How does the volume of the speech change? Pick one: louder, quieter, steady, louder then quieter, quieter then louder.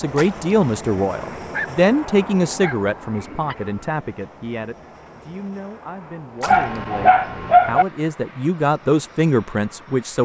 quieter then louder.